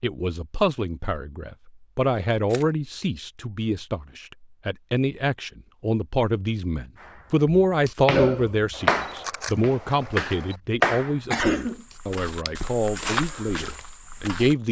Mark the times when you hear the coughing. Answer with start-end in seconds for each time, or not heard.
11.3-11.8.